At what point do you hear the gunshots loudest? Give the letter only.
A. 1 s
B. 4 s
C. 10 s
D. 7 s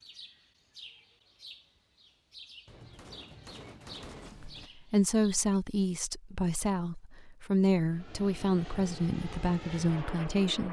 B.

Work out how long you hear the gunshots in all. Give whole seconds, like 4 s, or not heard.
2 s.